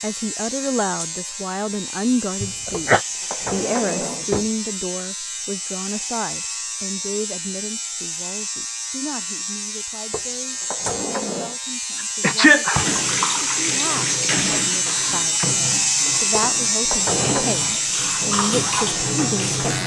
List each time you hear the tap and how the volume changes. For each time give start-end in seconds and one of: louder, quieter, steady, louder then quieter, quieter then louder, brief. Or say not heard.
12.7-19.8 quieter then louder.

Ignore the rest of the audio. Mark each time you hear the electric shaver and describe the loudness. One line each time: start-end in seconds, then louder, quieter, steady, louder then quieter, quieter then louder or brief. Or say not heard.
0.0-19.8 louder.